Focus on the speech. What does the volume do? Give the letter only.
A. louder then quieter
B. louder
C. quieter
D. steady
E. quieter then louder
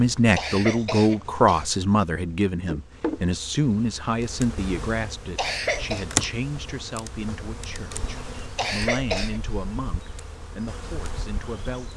C.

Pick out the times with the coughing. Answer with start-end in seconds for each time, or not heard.
0.3-1.6, 5.3-6.0, 8.6-9.4.